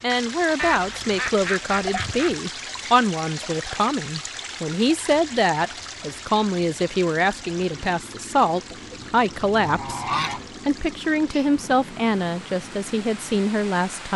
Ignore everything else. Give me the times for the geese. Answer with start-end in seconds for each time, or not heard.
0.6-2.4, 8.7-10.4.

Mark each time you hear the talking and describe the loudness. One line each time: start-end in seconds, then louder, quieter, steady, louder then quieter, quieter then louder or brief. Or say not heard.
0.0-14.1 steady.